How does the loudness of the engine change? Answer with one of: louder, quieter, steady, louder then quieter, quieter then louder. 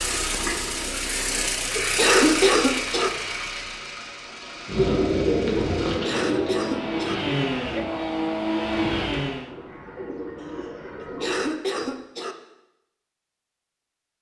quieter then louder.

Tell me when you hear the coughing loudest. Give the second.
2 s.